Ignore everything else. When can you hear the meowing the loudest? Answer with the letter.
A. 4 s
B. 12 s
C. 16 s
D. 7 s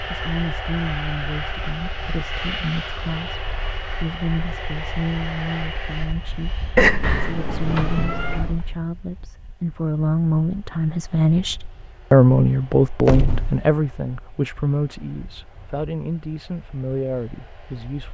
D.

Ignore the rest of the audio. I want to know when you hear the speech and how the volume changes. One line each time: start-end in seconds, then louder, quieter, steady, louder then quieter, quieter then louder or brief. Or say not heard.
0.1-18.0 louder then quieter.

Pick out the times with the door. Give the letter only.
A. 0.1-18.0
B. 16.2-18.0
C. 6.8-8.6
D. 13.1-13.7
D.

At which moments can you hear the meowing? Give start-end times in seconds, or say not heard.
6.8-8.6.